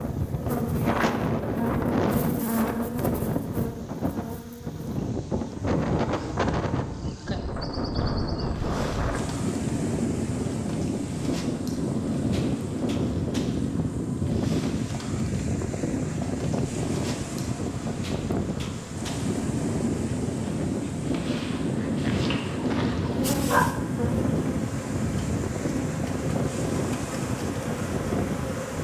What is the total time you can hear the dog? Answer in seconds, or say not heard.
3 s.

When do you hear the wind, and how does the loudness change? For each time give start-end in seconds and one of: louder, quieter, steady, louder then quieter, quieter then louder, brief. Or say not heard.
0.0-28.7 steady.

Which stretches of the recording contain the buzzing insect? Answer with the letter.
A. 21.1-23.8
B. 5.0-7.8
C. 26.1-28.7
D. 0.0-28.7
D.